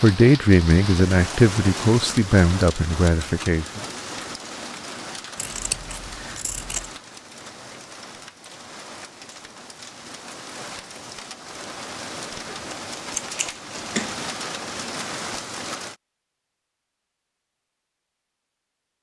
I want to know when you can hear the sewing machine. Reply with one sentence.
The sewing machine can't be heard in this clip.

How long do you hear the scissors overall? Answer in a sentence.
You can hear the scissors for 3 seconds altogether.